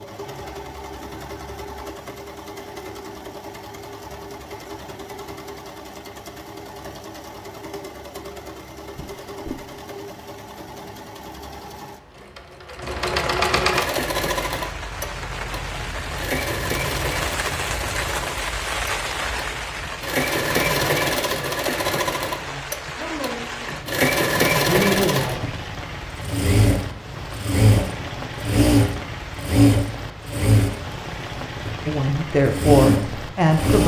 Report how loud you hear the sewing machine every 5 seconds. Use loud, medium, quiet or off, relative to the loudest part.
quiet, quiet, medium, medium, loud, loud, loud.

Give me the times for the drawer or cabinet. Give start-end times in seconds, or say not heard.
8.9-9.7.